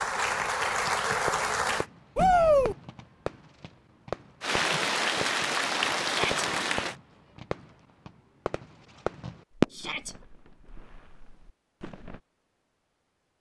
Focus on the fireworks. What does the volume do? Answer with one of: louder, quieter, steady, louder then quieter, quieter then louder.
louder.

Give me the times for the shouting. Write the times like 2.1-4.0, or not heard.
2.1-2.8, 6.0-6.5, 9.7-10.2.